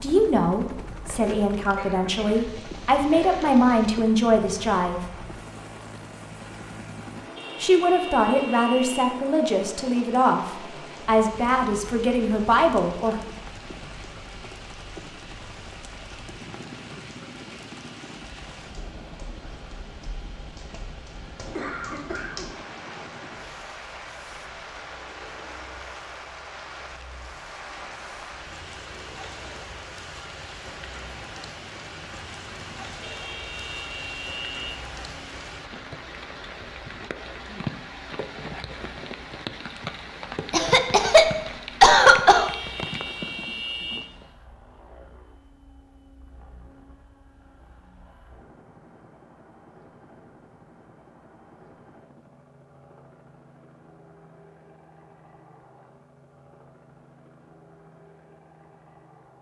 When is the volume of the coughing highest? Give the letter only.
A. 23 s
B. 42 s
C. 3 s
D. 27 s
B.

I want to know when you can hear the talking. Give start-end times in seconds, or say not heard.
0.0-5.0, 7.6-13.2.